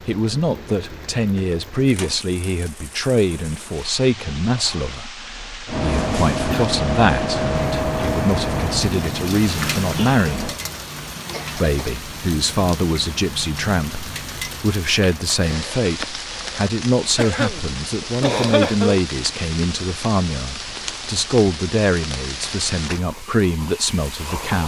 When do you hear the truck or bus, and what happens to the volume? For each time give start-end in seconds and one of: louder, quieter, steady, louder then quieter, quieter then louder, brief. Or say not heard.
5.7-10.6 quieter.